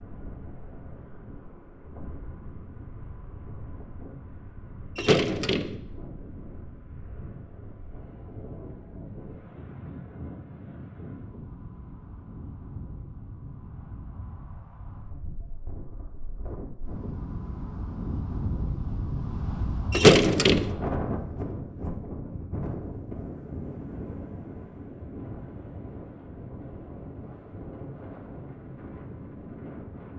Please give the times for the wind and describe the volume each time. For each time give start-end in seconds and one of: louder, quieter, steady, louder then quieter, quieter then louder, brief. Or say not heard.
0.0-30.1 louder then quieter.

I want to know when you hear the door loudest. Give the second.
20 s.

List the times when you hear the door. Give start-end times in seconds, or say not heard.
5.0-5.8, 19.9-20.8.